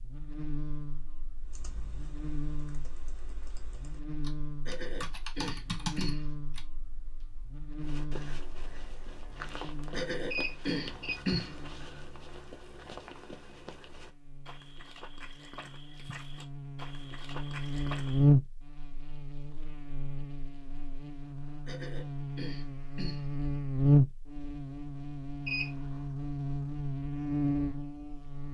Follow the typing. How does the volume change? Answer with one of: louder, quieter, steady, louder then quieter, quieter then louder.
louder.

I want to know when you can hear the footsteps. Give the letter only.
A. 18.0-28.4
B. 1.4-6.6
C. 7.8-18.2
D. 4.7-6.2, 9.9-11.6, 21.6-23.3
C.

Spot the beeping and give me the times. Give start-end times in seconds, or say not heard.
10.3-11.2, 25.4-26.0.